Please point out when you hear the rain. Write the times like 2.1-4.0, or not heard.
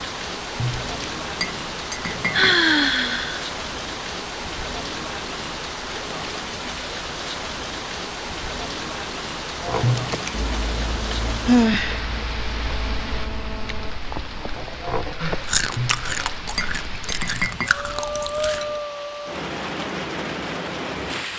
0.0-21.3.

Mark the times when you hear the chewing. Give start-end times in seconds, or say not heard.
9.6-18.8.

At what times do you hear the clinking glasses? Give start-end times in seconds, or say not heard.
0.6-2.6, 9.8-10.4, 15.8-17.7.